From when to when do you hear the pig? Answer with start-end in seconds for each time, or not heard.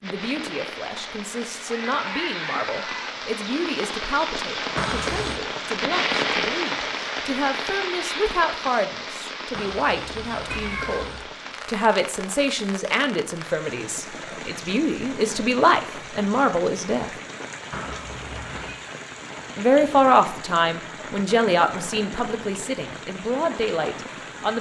1.4-3.1.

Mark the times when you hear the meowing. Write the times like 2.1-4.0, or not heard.
4.8-5.4, 9.6-11.2, 17.7-18.8.